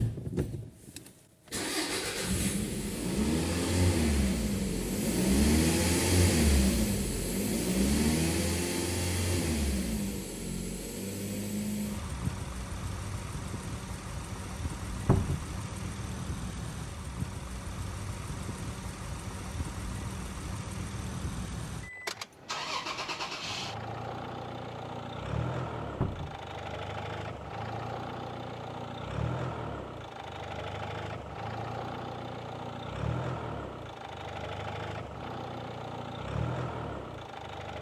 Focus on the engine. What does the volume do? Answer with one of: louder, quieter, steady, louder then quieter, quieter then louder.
quieter.